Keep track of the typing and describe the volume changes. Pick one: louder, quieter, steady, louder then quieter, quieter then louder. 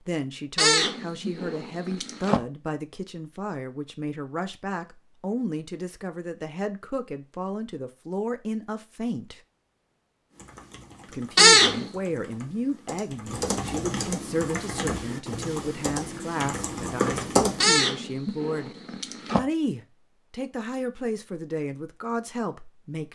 louder.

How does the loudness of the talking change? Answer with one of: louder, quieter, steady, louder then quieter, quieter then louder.
steady.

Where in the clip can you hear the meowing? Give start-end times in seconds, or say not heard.
0.6-2.4, 11.3-11.9, 17.6-19.4.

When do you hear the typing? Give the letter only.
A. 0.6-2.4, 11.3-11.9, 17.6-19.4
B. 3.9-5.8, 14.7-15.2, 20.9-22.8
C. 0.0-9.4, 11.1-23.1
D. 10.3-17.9
D.